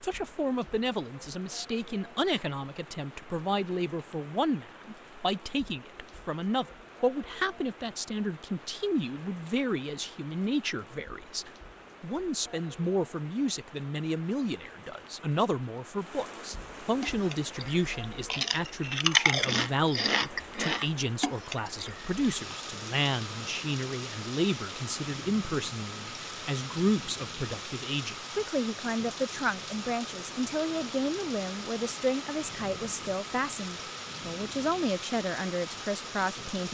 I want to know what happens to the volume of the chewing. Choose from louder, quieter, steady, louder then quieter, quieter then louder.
louder then quieter.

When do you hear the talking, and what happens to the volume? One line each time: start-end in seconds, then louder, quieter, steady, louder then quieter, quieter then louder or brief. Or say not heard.
0.0-36.6 steady.